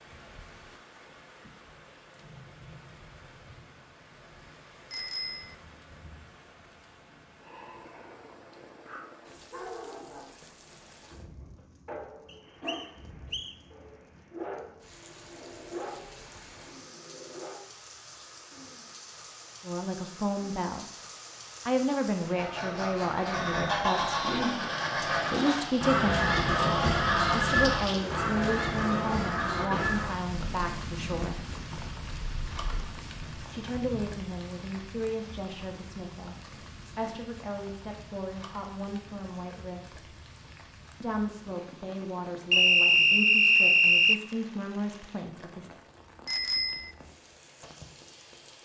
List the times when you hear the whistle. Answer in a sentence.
You can hear the whistle from 12.2 to 13.6 s, from 23.4 to 25.4 s and from 42.5 to 44.2 s.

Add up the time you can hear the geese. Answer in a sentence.
You can hear the geese for 12 seconds altogether.